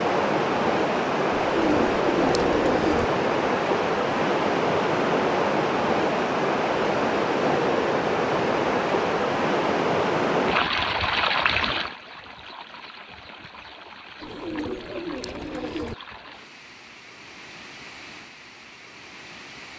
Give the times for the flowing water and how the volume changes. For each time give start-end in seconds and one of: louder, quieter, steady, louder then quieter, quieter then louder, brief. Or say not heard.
0.0-19.7 quieter.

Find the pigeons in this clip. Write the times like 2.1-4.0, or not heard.
1.4-3.0, 14.2-15.9.